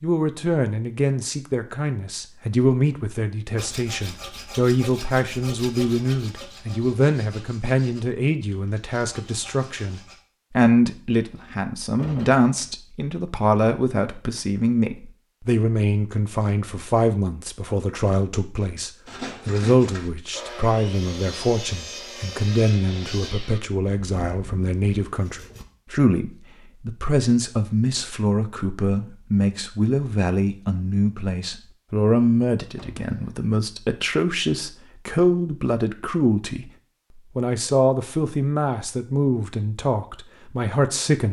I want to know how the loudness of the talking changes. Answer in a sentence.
The loudness of the talking stays about the same.